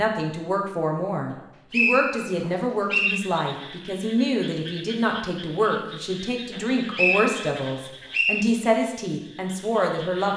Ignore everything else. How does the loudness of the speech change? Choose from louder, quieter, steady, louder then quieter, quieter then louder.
steady.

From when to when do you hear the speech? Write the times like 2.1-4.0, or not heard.
0.0-10.3.